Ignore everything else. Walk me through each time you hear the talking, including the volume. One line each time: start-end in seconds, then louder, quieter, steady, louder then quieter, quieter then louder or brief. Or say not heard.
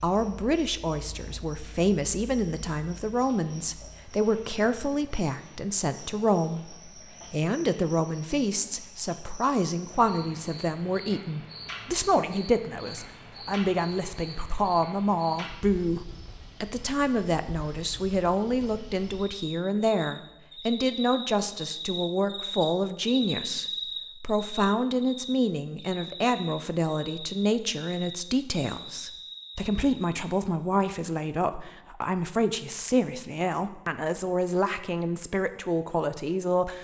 0.0-36.8 steady.